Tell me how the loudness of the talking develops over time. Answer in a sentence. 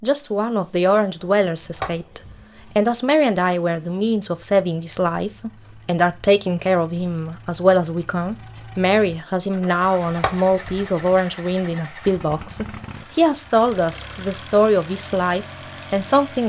The loudness of the talking stays about the same.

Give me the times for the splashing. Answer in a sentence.
You can't hear the splashing here.